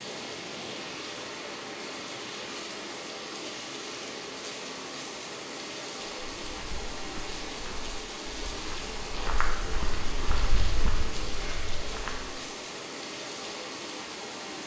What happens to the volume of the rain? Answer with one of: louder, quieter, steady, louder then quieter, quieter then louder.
steady.